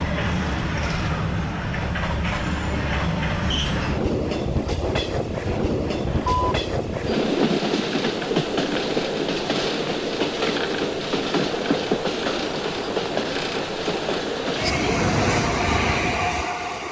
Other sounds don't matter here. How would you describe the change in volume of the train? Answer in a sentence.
The volume of the train stays about the same.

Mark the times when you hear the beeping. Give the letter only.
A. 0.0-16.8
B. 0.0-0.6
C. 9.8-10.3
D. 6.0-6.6
D.